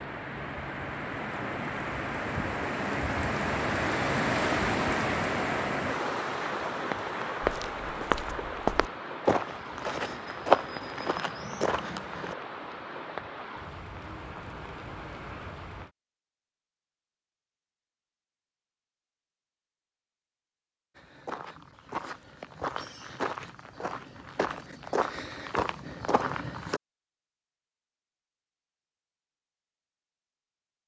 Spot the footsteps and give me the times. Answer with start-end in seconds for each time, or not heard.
7.4-12.3, 20.9-26.8.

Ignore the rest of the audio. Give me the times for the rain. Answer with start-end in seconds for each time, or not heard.
0.0-15.9.